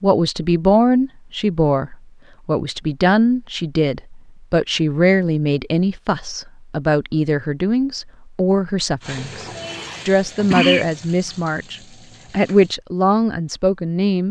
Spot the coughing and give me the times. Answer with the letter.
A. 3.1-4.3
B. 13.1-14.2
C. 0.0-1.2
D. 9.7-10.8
D.